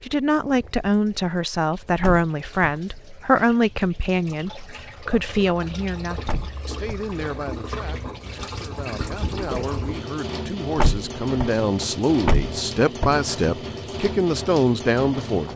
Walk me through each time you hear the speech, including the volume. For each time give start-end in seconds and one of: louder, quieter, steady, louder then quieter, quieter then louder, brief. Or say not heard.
0.0-15.5 quieter then louder.